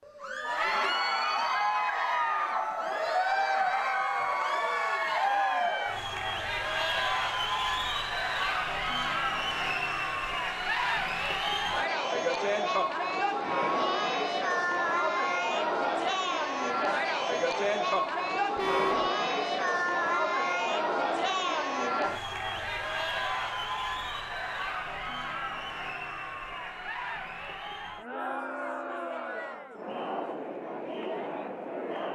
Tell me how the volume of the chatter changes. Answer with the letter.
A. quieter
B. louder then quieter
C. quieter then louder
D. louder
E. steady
A.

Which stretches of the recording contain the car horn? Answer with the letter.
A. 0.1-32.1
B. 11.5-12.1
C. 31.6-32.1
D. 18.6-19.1
D.